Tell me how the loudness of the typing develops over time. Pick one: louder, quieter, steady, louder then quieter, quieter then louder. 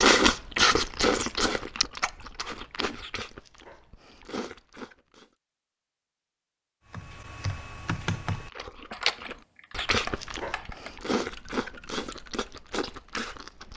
quieter.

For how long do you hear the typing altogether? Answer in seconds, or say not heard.
6 s.